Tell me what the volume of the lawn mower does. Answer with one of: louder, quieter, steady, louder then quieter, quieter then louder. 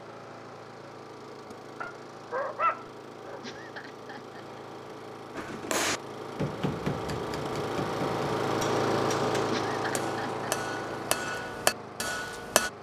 louder then quieter.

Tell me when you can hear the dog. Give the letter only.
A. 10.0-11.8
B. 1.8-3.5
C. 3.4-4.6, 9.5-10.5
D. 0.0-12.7
B.